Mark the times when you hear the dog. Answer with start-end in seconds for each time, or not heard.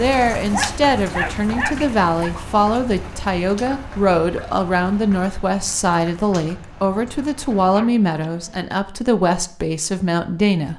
0.3-2.3, 7.6-8.6.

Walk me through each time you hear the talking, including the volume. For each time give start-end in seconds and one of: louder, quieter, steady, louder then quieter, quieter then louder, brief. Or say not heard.
0.0-10.7 steady.